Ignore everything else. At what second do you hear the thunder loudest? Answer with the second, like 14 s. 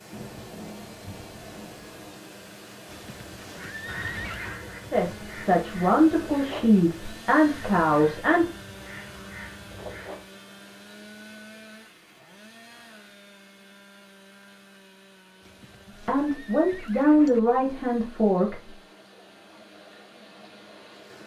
1 s.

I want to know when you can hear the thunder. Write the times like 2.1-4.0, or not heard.
0.1-2.1.